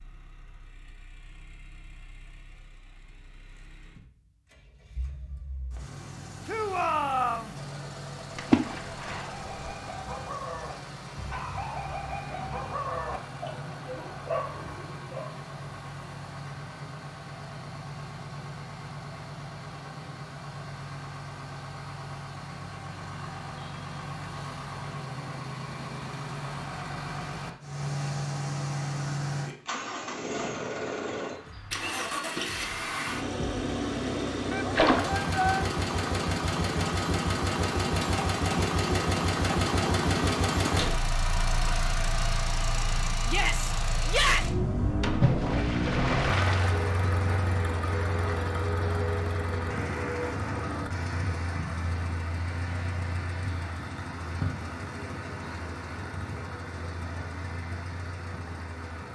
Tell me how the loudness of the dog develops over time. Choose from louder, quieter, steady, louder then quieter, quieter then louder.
steady.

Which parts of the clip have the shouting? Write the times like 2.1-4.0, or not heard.
6.5-7.5, 34.5-35.6, 43.2-44.5.